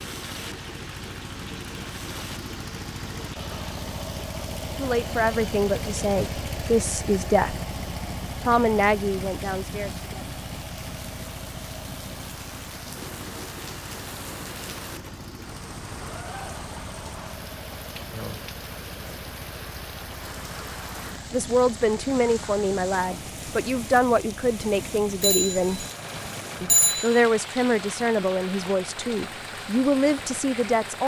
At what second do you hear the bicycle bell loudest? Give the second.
27 s.